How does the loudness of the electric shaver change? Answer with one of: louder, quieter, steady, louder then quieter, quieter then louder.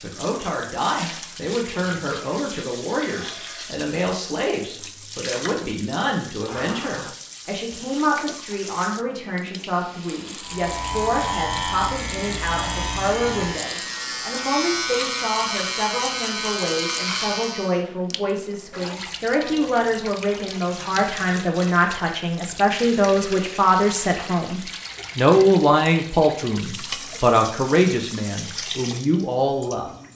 steady.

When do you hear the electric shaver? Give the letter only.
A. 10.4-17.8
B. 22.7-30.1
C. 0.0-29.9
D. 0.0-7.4
A.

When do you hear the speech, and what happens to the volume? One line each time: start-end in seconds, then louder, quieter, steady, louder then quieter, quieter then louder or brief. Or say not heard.
0.0-29.9 louder.